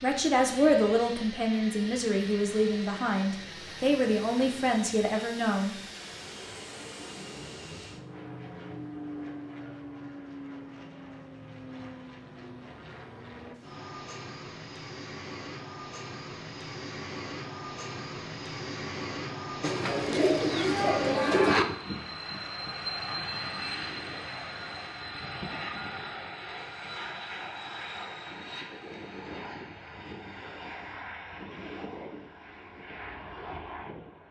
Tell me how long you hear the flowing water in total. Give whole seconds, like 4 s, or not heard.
not heard.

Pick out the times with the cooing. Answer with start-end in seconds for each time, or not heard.
19.6-21.6.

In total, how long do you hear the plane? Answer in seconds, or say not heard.
34 s.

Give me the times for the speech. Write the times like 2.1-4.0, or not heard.
0.0-5.8.